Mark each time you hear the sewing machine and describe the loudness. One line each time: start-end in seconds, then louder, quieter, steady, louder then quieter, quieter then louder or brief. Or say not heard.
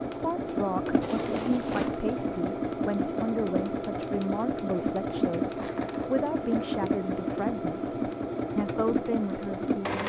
0.0-10.0 steady.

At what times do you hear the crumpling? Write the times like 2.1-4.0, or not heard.
1.0-2.0, 5.5-6.8.